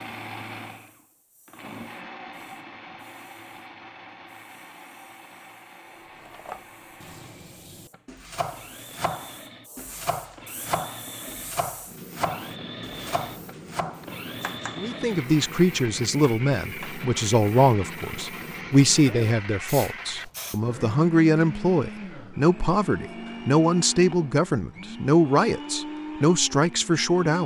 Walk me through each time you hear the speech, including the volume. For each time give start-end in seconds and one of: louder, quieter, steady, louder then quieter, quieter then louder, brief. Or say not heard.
14.8-27.4 steady.